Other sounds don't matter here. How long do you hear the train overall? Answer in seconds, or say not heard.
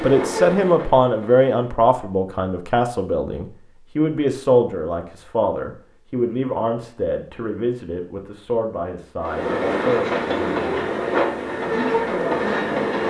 5 s.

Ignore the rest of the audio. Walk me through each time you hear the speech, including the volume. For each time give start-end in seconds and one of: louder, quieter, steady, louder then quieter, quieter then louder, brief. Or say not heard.
0.0-10.9 quieter
11.7-12.8 brief.